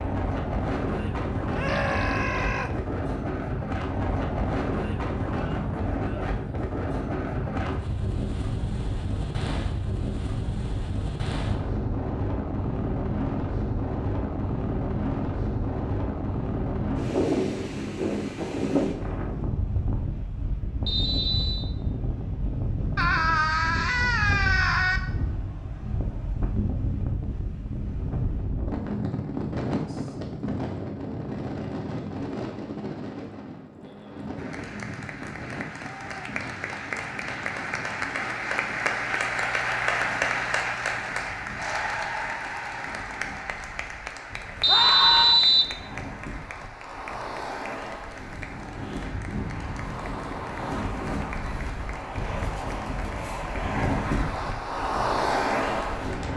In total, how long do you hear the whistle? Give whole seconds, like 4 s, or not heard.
2 s.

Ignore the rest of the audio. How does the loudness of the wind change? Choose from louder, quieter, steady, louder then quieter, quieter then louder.
quieter then louder.